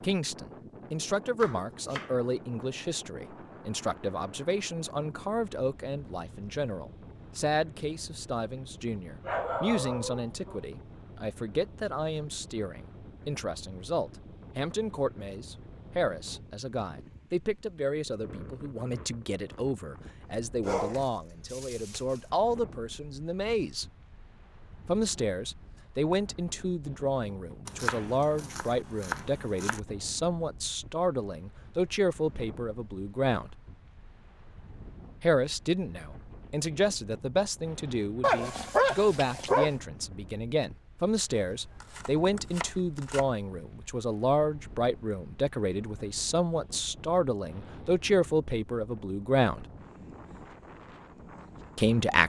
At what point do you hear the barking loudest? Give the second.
39 s.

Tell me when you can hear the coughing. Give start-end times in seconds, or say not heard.
not heard.